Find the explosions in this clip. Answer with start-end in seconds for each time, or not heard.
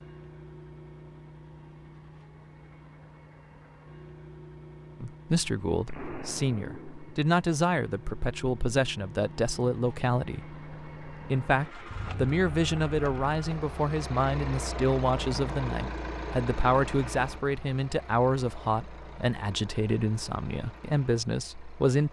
5.8-7.2.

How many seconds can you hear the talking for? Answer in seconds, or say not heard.
17 s.